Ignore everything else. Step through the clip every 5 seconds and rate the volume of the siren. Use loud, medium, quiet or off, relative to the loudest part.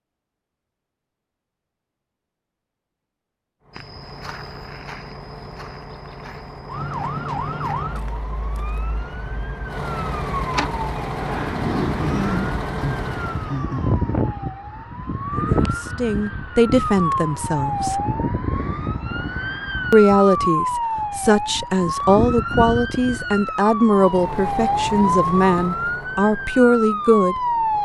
off, medium, loud, loud, loud, loud.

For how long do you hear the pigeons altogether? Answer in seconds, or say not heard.
not heard.